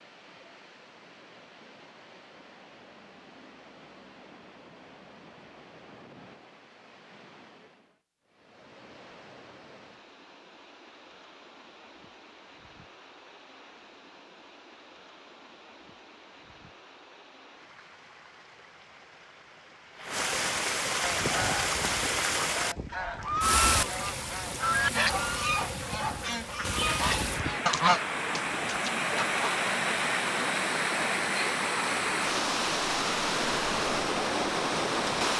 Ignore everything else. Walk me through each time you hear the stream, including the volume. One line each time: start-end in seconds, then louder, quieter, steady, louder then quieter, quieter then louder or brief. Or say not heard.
0.0-35.3 louder.